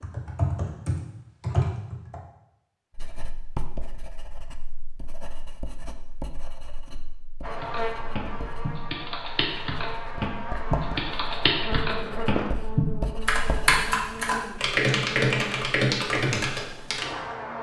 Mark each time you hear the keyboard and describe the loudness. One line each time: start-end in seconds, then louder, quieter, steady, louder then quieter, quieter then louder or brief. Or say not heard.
0.0-2.2 brief
7.6-17.1 louder.